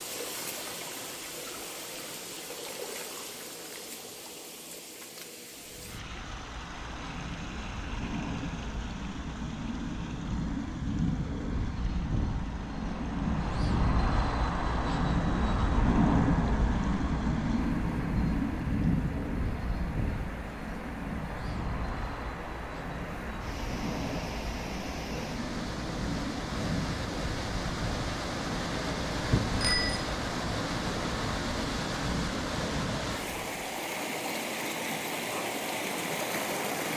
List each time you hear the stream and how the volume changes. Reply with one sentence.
The stream can be heard from 0.0 to 36.9 s, getting quieter then louder.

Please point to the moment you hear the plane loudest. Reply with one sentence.
The volume of the plane peaks at 16 seconds.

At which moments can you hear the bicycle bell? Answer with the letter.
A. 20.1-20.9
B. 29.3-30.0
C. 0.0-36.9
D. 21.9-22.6
B.